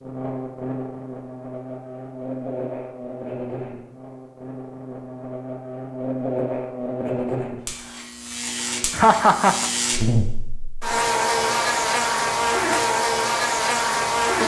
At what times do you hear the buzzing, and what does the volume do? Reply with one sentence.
You can hear the buzzing from 0.0 to 14.4 s, getting louder.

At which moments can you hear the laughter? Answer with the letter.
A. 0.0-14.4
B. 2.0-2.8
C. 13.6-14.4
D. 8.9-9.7
D.